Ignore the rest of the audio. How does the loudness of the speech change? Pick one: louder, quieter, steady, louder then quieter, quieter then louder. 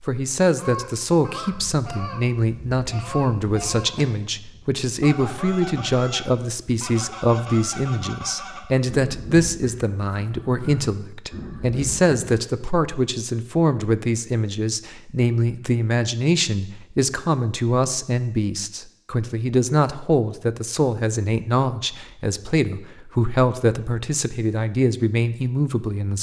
steady.